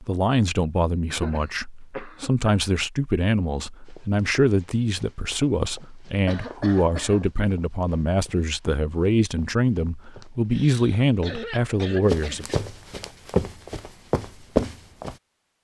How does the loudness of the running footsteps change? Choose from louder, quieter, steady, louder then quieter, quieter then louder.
louder.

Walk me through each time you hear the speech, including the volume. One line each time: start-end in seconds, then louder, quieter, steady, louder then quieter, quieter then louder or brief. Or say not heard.
0.0-12.4 steady.